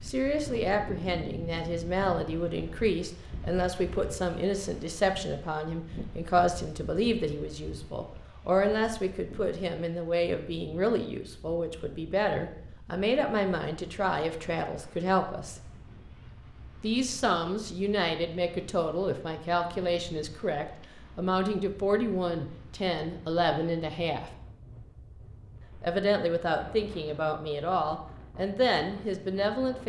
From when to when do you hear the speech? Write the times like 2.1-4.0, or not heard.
0.0-15.6, 16.8-24.4, 25.8-29.8.